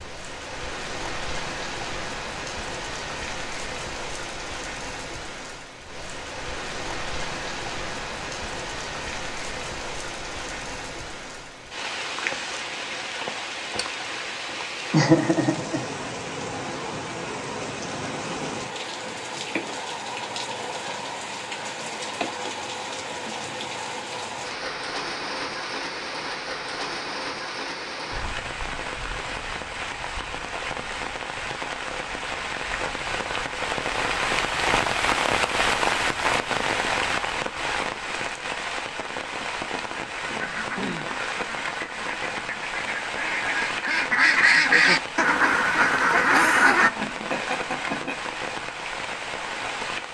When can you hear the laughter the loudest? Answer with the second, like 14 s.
15 s.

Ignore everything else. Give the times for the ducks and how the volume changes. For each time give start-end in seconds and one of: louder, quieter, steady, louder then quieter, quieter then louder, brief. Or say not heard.
40.1-46.9 louder.